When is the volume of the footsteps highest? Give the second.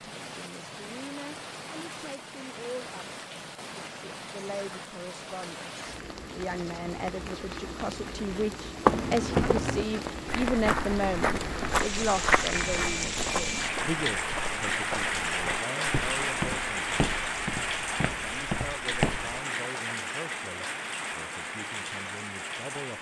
9 s.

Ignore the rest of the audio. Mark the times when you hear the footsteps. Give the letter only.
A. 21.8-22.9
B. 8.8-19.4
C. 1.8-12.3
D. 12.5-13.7
B.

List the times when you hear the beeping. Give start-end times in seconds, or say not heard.
12.5-13.7.